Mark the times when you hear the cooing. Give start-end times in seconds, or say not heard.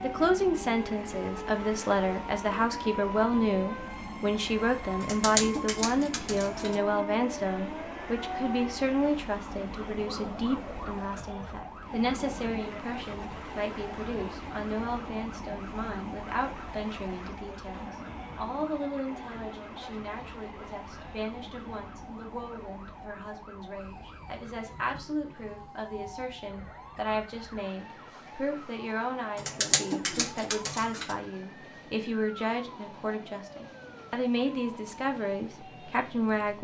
5.0-6.8, 29.4-31.1.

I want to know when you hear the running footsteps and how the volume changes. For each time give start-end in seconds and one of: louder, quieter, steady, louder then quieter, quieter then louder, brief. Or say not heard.
not heard.